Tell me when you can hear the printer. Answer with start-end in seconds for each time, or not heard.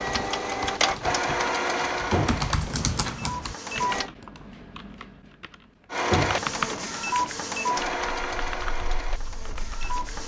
0.0-4.1, 5.9-10.2.